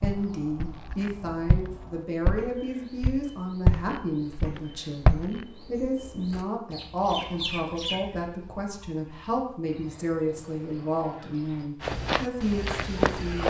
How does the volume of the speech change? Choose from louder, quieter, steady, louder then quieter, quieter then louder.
steady.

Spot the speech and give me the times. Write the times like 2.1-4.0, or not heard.
0.0-13.4.